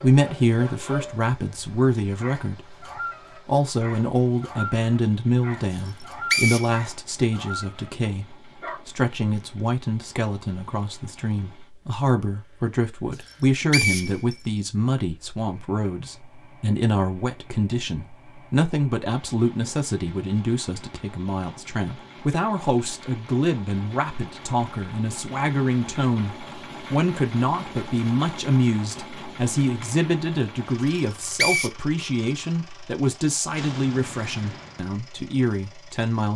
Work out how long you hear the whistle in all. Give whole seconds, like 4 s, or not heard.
3 s.